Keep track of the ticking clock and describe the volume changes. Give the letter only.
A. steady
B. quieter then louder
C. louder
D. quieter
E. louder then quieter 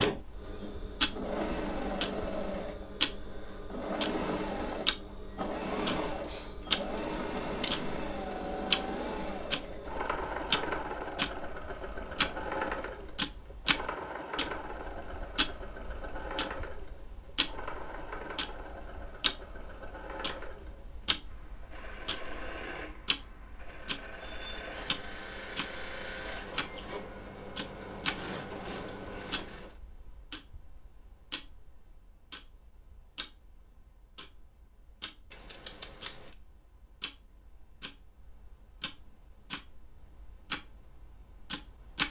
D.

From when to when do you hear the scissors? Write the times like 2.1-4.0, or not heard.
6.8-7.8, 35.3-36.4.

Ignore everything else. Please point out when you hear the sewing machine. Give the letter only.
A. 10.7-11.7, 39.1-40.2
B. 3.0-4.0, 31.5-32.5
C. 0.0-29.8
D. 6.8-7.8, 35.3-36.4
C.